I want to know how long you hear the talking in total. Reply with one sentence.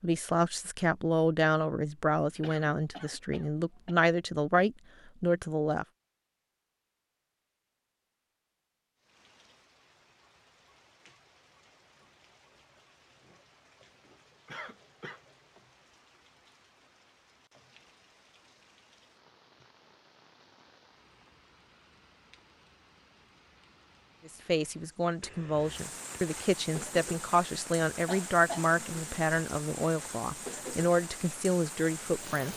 You can hear the talking for 14 seconds altogether.